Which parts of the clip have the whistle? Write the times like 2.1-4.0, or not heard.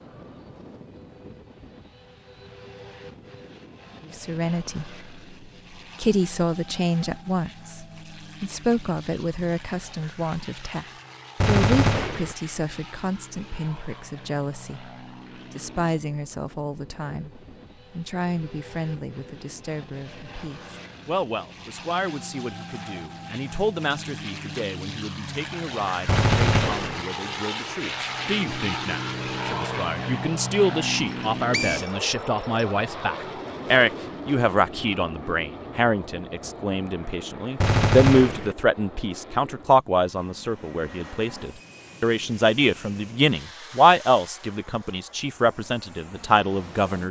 31.0-32.6.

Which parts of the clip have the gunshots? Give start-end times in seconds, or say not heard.
11.4-12.3, 26.1-27.1, 37.6-38.5.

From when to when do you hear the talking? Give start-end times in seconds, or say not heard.
4.2-4.9, 6.0-47.0.